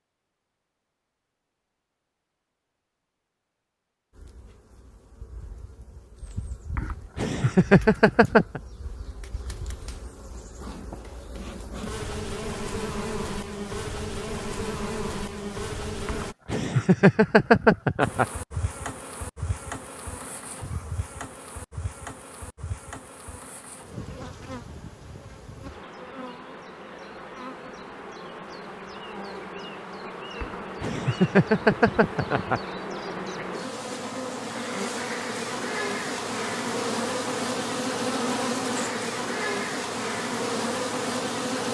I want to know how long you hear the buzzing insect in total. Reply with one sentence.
You can hear the buzzing insect for 36 seconds altogether.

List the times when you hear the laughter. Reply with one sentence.
The laughter can be heard from 6.8 to 8.6 s, from 16.1 to 18.2 s and from 30.4 to 32.6 s.